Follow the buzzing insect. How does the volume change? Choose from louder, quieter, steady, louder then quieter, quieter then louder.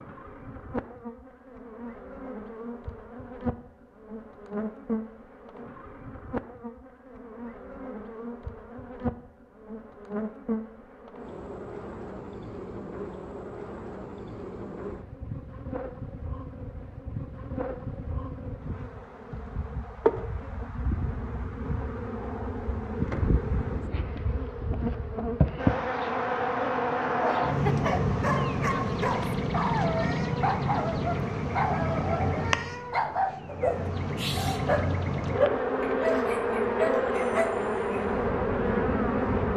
louder.